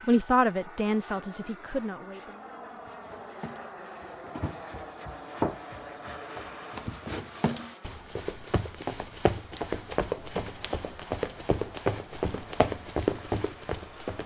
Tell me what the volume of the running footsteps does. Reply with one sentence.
The loudness of the running footsteps goes up.